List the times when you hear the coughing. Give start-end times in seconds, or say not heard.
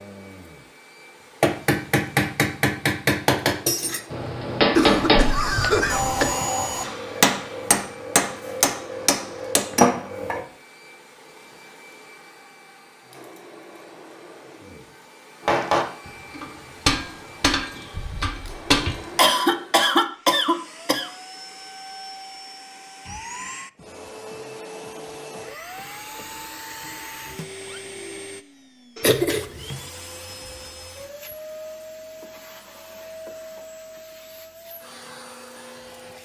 4.8-6.3, 19.1-21.1, 29.0-29.8.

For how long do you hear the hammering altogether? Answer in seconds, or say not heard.
13 s.